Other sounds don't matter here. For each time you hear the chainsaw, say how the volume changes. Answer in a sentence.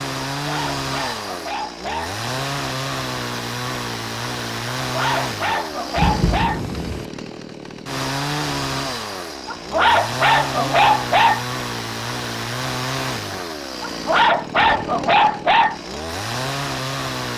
You can hear the chainsaw from 0.0 to 17.3 s, at a steady volume.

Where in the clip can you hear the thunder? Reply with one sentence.
The thunder can be heard from 6.0 to 7.0 s.